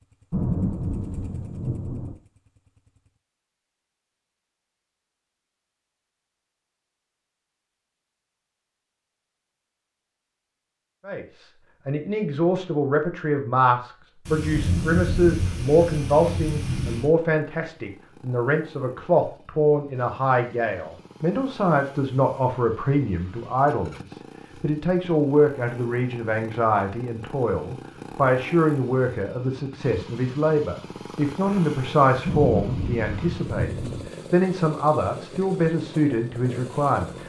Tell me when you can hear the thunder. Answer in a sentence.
You can hear the thunder from 0.3 to 2.1 s, from 14.2 to 17.1 s and from 32.2 to 34.0 s.